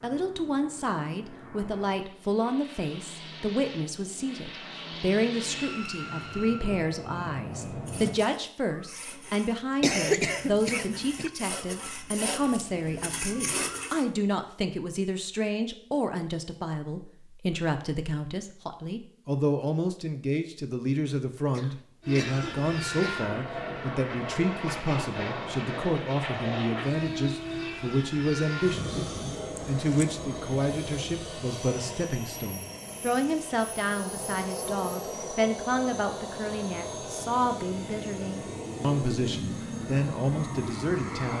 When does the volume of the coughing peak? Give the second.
10 s.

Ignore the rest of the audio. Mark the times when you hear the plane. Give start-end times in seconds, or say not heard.
0.0-8.2, 22.0-41.3.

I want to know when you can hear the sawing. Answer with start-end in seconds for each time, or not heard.
7.7-14.1.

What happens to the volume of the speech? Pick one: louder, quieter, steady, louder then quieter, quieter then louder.
steady.